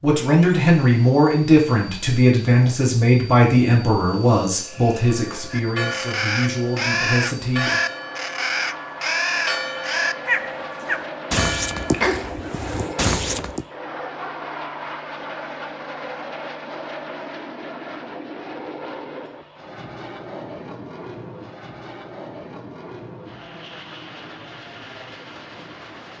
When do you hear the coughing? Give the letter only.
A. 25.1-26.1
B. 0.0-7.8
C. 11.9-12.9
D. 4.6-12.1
C.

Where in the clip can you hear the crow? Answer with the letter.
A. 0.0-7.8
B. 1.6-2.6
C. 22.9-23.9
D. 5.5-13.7
D.